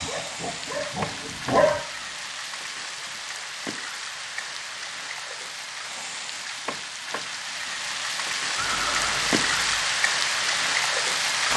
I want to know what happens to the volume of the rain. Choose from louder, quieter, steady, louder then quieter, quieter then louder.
louder.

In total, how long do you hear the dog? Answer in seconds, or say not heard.
2 s.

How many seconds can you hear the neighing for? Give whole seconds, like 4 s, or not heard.
2 s.